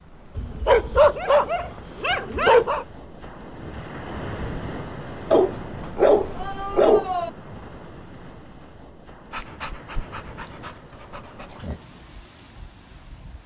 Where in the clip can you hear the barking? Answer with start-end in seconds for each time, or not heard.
0.3-2.9, 5.3-7.3, 9.3-11.8.